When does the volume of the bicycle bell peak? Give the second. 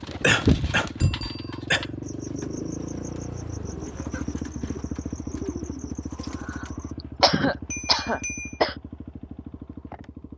8 s.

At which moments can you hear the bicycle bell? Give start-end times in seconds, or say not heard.
1.0-1.6, 7.7-8.6.